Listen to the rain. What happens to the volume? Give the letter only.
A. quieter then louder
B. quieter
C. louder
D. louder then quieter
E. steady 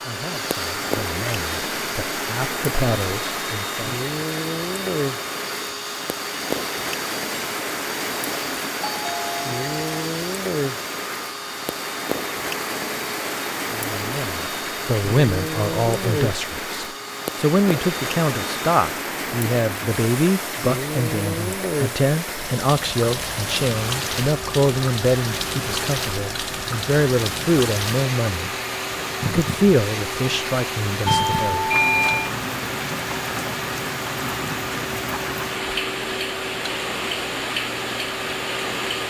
E.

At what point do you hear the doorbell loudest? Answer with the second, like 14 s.
32 s.